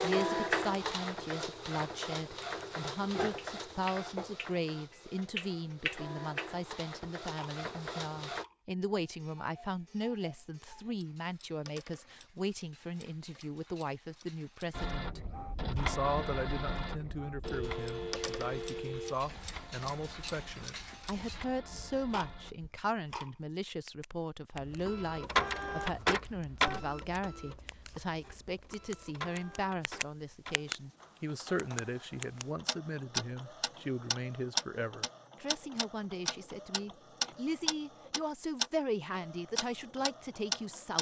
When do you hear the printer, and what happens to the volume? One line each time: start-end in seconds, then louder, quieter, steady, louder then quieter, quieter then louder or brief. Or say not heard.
0.0-8.4 quieter
14.7-22.6 quieter
24.6-40.9 quieter.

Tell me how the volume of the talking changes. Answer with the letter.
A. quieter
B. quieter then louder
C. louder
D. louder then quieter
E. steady
E.